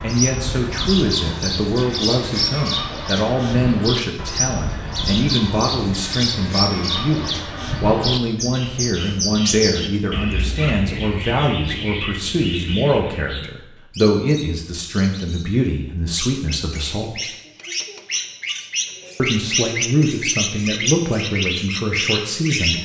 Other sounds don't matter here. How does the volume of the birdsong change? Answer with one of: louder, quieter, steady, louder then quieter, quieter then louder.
quieter then louder.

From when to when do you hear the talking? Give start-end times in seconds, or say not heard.
0.0-17.2, 19.1-22.8.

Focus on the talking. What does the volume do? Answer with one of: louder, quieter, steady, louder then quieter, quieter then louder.
steady.